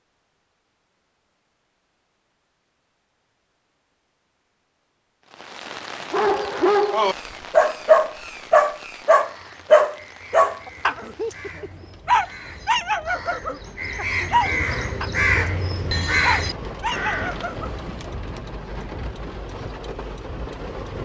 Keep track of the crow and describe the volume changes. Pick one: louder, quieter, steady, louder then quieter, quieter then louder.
louder.